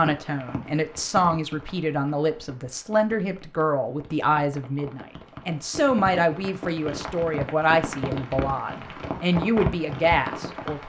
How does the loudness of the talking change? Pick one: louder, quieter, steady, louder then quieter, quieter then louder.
steady.